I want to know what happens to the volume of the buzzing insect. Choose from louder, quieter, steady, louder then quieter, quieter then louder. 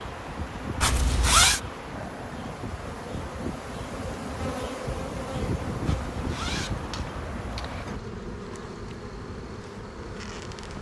louder then quieter.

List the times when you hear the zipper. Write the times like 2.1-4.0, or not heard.
0.8-1.6, 5.8-7.8.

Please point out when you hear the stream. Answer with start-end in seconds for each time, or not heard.
0.0-8.0.